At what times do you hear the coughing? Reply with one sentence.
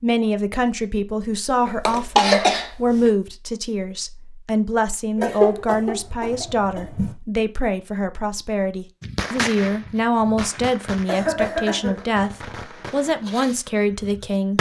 The coughing can be heard from 1.6 to 3.1 s, from 5.2 to 7.2 s and from 11.1 to 12.1 s.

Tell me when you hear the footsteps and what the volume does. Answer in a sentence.
The footsteps can't be heard in this clip.